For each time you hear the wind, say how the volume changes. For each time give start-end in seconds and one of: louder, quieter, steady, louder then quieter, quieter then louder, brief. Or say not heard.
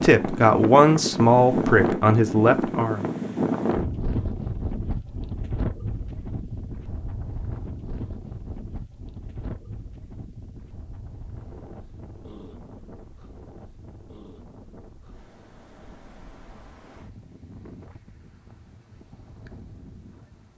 0.0-20.5 quieter.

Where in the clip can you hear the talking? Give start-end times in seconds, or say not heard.
0.0-3.0.